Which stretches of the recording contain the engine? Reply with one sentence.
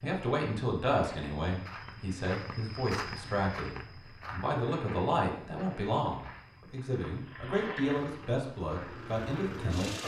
You can hear the engine from 7.2 to 10.0 s.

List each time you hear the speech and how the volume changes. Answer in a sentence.
You can hear the speech from 0.0 to 10.0 s, at a steady volume.